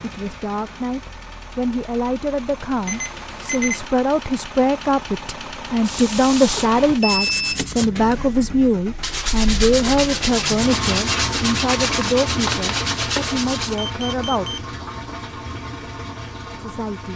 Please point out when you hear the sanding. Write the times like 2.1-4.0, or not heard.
5.8-13.8.